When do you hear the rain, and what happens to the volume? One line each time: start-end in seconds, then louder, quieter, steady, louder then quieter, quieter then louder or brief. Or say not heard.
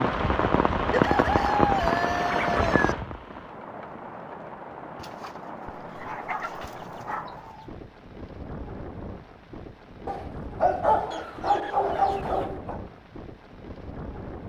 0.0-14.4 quieter.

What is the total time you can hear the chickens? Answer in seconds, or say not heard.
6 s.